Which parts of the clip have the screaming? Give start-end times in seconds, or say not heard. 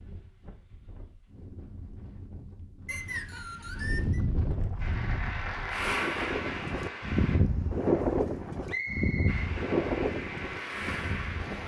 not heard.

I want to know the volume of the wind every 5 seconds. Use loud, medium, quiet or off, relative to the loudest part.
medium, loud, medium.